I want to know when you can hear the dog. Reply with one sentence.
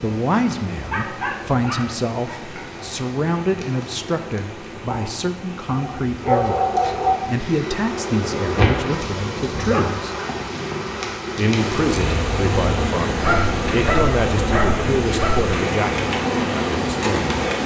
The dog can be heard from 0.9 to 2.6 s, from 5.7 to 7.2 s, from 8.9 to 10.0 s and from 13.2 to 15.6 s.